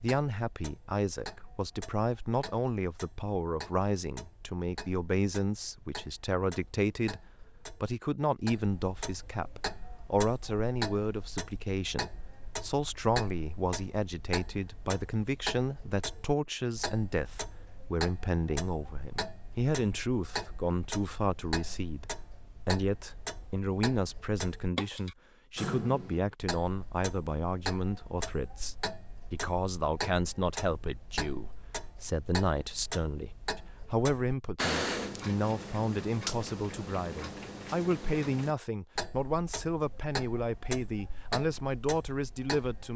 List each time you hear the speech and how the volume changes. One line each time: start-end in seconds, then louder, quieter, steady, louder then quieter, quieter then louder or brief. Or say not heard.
0.0-42.9 steady.